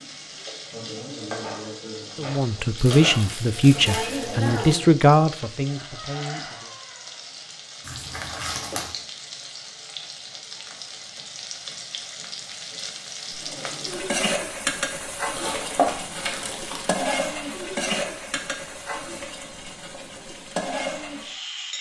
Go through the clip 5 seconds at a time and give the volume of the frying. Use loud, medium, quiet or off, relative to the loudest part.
loud, medium, loud, loud, loud.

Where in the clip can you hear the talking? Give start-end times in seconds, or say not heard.
2.1-6.8.